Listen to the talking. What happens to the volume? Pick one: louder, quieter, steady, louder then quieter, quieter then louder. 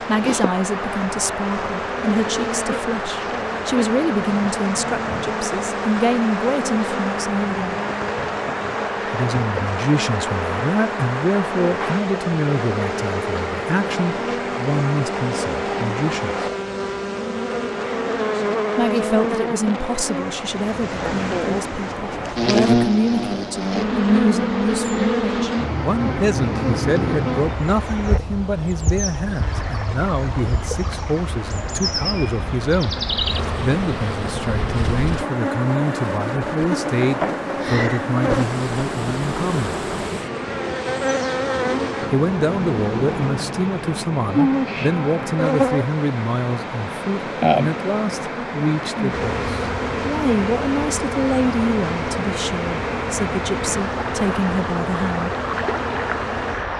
steady.